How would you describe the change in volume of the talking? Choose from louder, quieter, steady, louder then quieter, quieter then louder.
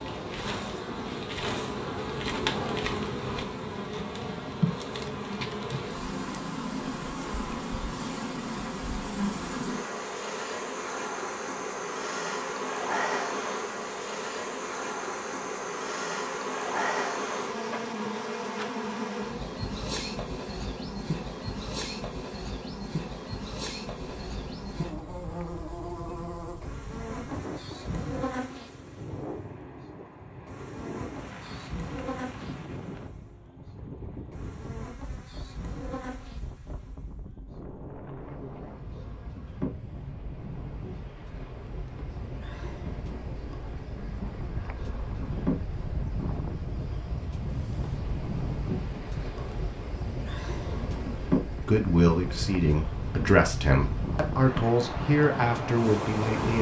steady.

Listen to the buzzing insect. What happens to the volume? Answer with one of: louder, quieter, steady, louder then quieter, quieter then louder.
quieter then louder.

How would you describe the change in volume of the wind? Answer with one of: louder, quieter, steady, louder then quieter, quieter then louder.
louder.